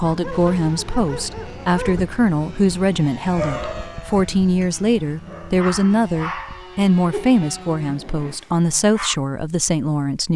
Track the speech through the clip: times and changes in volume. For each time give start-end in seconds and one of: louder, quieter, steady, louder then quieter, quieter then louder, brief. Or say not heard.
0.0-10.3 steady.